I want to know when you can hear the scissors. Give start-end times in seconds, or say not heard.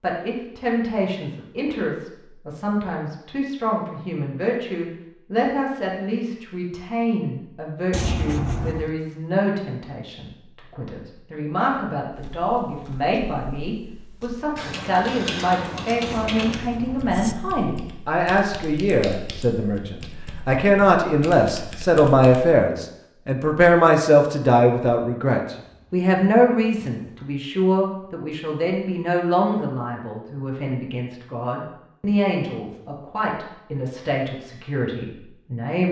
7.9-8.9, 16.1-17.4, 25.6-27.4.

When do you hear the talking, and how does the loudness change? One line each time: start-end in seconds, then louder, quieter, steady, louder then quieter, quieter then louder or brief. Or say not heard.
0.0-35.8 louder then quieter.